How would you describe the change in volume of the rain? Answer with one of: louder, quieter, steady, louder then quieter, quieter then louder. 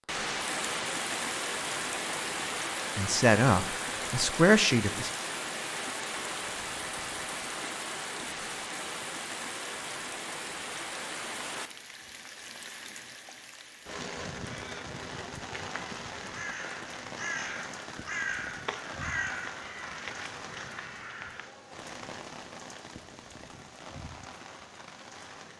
quieter.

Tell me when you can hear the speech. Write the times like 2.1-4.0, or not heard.
3.0-5.1.